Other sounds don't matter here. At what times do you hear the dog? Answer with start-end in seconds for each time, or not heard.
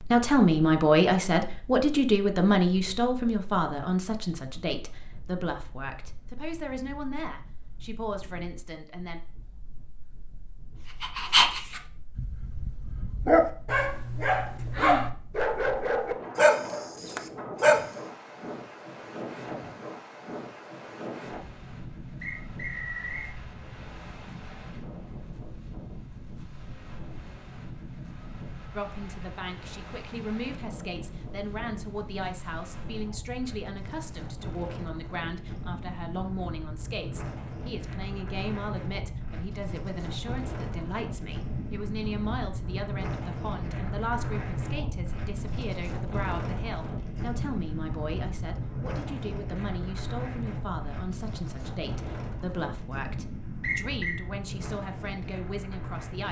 11.0-18.0.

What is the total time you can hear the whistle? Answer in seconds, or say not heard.
2 s.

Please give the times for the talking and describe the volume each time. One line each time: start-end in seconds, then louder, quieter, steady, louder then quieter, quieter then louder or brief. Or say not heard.
0.0-9.2 quieter
28.8-56.2 steady.